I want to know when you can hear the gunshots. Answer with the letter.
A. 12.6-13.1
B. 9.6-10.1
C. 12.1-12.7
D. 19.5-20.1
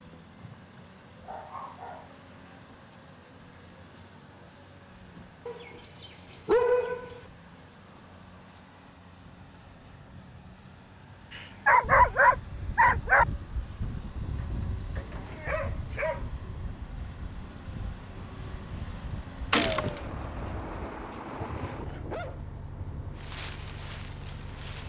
D.